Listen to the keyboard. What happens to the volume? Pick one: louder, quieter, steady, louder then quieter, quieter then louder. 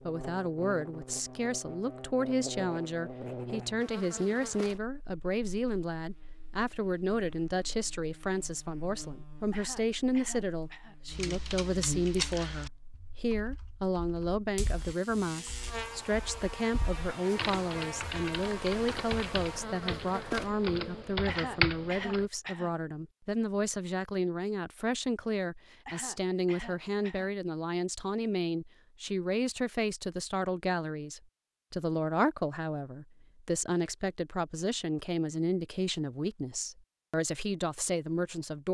quieter then louder.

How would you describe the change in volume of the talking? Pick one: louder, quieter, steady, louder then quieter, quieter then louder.
steady.